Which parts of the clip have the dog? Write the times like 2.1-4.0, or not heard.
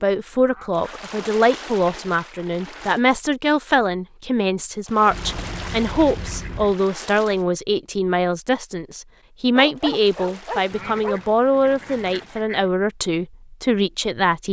9.6-11.2.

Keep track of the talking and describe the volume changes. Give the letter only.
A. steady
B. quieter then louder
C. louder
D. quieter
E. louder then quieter
A.